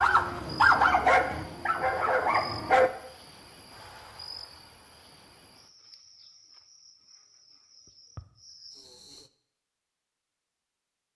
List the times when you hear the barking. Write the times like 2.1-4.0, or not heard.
0.0-2.9.